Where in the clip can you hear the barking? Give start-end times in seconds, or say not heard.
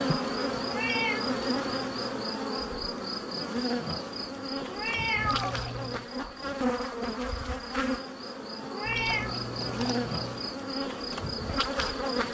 not heard.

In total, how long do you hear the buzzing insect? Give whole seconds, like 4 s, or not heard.
12 s.